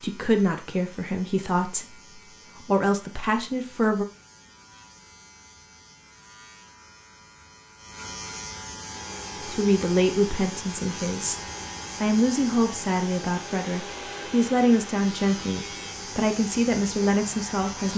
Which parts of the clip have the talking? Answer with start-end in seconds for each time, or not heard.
0.0-1.9, 2.5-4.0, 9.4-11.4, 12.0-17.9.